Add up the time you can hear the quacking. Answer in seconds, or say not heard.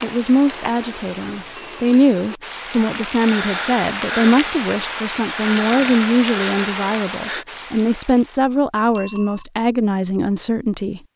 not heard.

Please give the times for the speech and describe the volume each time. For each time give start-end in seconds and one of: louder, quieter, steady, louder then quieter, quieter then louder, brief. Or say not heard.
0.0-11.0 steady.